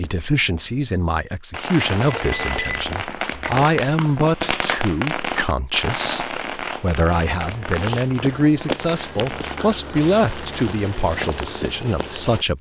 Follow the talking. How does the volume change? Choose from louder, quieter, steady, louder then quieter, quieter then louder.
steady.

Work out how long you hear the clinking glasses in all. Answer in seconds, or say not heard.
2 s.